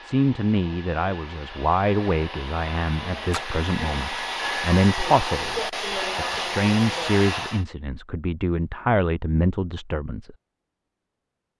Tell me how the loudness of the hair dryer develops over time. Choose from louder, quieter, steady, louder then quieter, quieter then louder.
louder.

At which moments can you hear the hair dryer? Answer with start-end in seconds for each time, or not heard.
0.0-7.7.